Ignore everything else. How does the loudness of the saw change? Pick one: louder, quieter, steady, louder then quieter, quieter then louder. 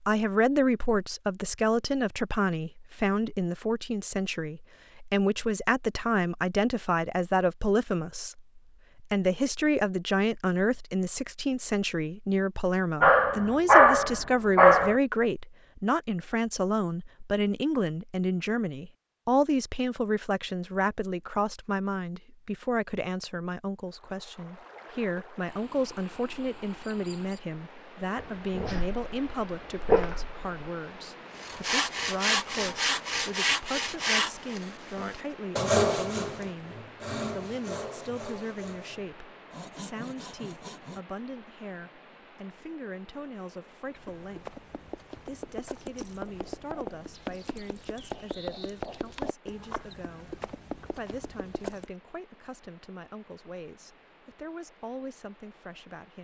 quieter.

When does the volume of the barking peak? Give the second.
14 s.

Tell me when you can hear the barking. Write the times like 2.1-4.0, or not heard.
13.0-14.9, 28.1-30.5.